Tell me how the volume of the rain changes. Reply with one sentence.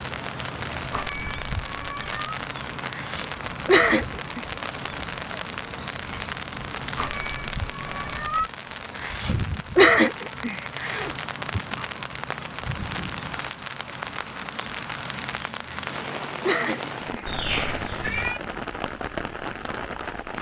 The loudness of the rain stays about the same.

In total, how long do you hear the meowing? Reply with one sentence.
You can hear the meowing for 4 seconds altogether.